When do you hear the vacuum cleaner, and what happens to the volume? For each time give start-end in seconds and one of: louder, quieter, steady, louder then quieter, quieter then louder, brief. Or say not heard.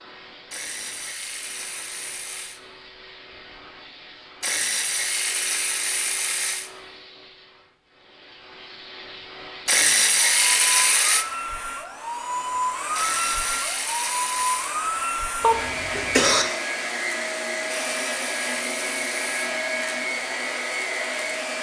0.0-21.5 louder.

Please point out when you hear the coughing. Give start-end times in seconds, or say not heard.
15.4-16.4.